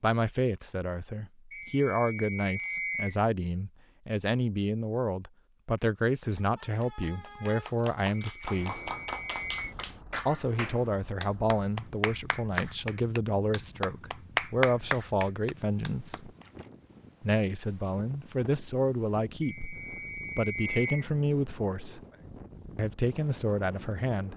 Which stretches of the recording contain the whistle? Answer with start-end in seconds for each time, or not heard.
1.5-3.2, 8.2-9.7, 19.4-21.1.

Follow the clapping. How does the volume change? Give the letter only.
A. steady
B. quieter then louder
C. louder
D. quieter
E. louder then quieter
C.